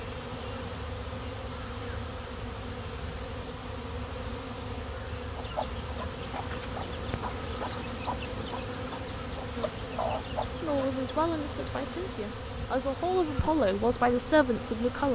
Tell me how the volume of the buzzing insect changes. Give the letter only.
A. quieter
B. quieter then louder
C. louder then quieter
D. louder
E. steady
E.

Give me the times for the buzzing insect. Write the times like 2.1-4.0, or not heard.
0.0-15.1.